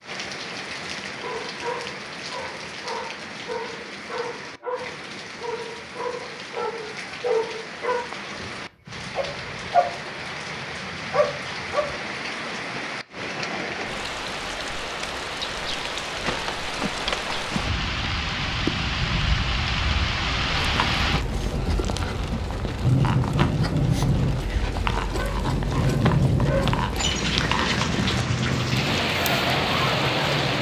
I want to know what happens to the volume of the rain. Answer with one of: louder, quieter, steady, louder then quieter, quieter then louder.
louder.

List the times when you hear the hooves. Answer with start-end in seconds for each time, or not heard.
20.5-30.5.